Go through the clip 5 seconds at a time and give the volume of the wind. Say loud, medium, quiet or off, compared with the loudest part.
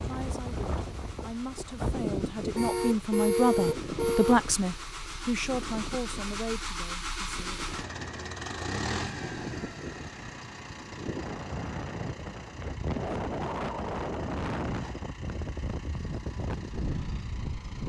loud, medium, loud, loud.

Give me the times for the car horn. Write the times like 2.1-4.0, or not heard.
2.5-4.4.